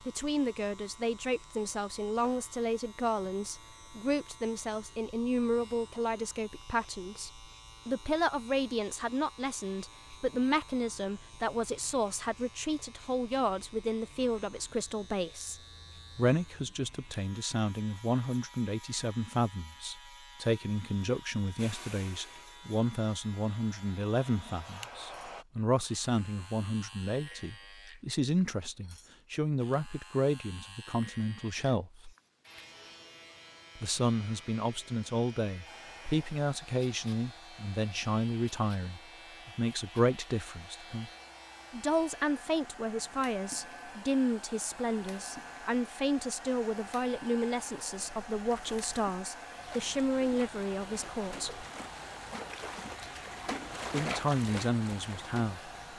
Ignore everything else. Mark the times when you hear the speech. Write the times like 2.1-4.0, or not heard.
0.1-15.6, 16.1-32.1, 33.8-41.1, 41.7-51.6, 53.9-55.7.